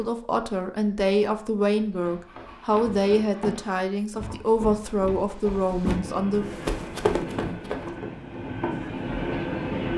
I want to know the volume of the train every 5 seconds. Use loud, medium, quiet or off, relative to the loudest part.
off, loud.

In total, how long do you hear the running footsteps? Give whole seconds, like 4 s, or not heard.
6 s.